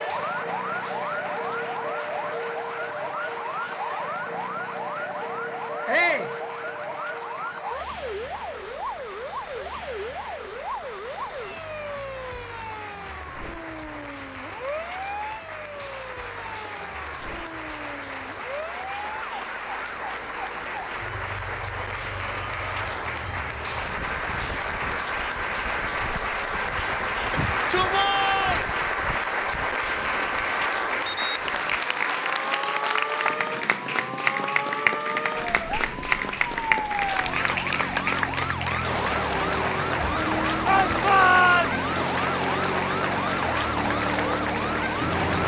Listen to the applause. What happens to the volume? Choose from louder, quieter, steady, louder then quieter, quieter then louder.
louder.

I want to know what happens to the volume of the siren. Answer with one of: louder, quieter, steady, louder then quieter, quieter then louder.
quieter then louder.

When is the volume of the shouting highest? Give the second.
41 s.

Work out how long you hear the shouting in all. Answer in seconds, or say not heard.
3 s.